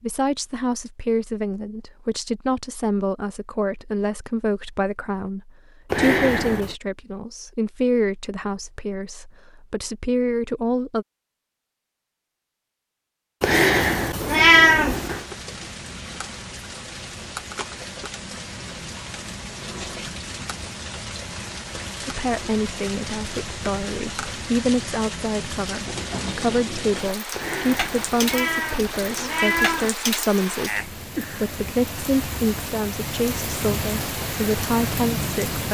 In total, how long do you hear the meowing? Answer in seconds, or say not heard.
5 s.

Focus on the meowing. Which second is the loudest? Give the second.
15 s.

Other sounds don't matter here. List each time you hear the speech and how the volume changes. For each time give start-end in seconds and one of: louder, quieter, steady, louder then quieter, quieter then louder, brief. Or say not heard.
0.0-11.1 steady
22.1-35.6 steady.